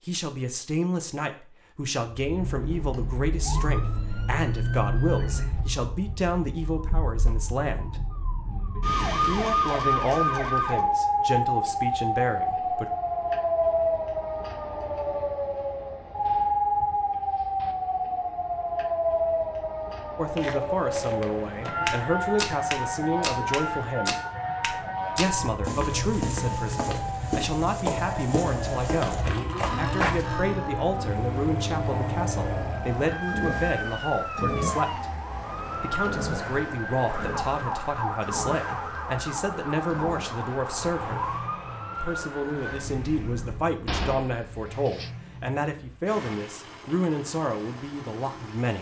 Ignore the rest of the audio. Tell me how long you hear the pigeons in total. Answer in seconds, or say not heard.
not heard.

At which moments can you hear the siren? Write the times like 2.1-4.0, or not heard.
2.3-43.8.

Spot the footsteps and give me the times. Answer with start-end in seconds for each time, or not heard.
20.4-30.3.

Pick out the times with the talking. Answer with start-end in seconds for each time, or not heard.
0.1-8.0, 9.1-12.9, 20.1-24.1, 25.1-35.1, 35.8-41.3, 42.0-48.7.